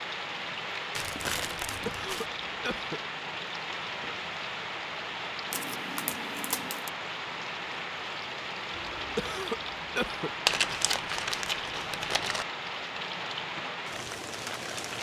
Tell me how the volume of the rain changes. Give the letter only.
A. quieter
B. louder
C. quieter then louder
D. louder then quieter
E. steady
E.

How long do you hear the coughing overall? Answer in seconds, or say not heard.
3 s.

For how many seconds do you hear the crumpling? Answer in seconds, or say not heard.
5 s.